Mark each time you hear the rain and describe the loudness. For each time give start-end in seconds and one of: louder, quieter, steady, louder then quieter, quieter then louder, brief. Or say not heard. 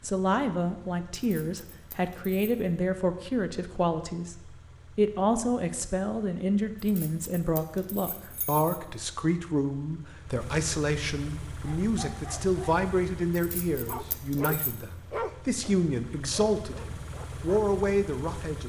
not heard.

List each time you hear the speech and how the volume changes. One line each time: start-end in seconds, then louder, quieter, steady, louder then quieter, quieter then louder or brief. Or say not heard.
0.0-18.6 steady.